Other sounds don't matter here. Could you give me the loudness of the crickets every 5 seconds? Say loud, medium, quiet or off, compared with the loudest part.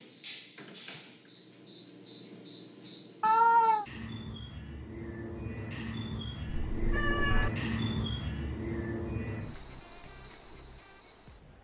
medium, loud, medium.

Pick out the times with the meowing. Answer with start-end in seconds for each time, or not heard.
3.2-3.9, 6.7-7.5.